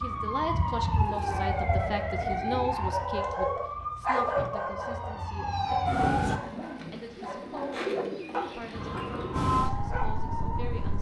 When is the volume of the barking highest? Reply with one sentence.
The volume of the barking peaks at 4 seconds.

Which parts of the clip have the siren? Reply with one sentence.
You can hear the siren from 0.0 to 6.4 s and from 8.7 to 10.9 s.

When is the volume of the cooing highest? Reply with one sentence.
The volume of the cooing peaks at 8 seconds.